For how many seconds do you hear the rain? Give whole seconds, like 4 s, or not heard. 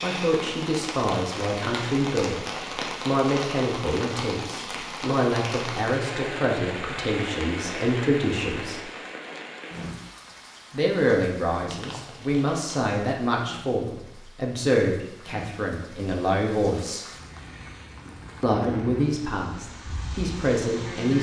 21 s.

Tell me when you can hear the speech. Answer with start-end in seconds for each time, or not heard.
0.0-2.4, 3.0-8.8, 10.7-17.1, 18.4-21.1.